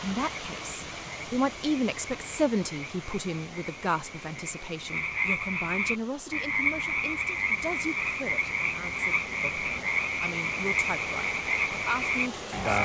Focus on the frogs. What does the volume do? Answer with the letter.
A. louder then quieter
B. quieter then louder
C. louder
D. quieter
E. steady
C.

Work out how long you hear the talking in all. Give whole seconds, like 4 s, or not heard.
13 s.